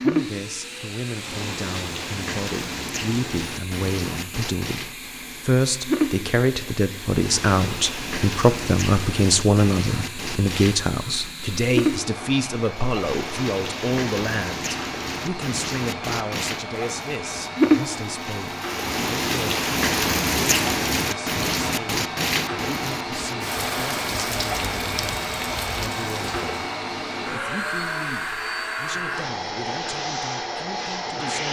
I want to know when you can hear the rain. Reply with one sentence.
You can hear the rain from 0.0 to 26.6 s.